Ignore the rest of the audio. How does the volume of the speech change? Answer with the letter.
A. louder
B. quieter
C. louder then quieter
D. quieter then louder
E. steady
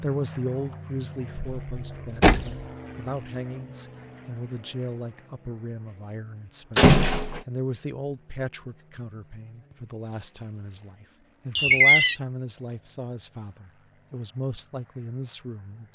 E.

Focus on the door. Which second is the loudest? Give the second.
12 s.